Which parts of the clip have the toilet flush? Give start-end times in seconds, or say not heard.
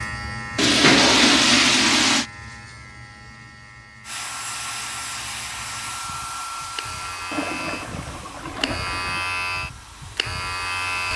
0.6-2.2, 7.3-9.3.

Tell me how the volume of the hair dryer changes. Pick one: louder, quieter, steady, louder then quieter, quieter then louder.
quieter.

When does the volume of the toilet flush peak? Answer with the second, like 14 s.
1 s.